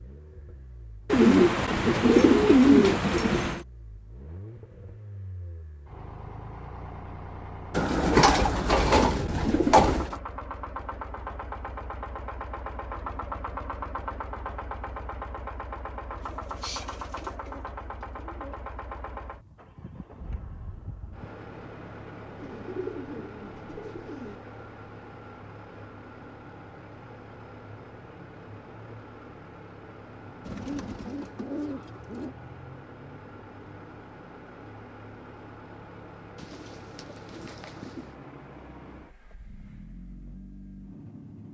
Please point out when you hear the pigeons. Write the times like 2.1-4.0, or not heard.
1.1-3.6, 7.7-10.2, 16.2-18.6, 22.4-24.4, 30.4-32.4, 36.4-38.1.